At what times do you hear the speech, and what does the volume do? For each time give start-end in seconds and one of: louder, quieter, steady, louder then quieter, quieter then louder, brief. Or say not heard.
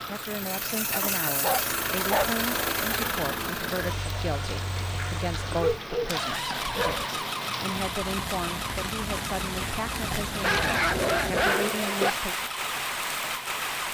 0.1-12.3 steady.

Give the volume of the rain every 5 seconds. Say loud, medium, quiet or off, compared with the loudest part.
medium, loud, loud.